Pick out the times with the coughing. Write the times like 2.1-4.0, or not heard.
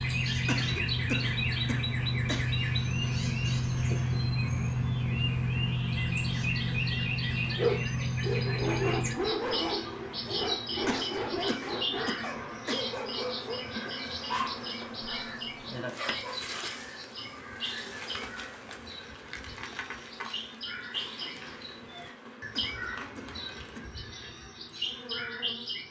0.5-2.5, 10.8-12.8, 22.6-24.0.